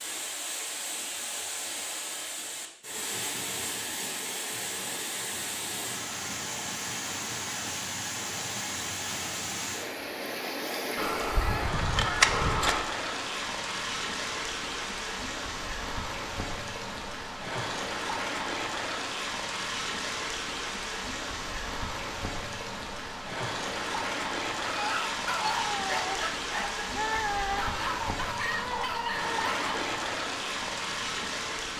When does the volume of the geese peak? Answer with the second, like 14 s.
12 s.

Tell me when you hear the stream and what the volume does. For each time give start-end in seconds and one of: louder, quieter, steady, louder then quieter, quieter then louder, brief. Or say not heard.
0.0-31.7 steady.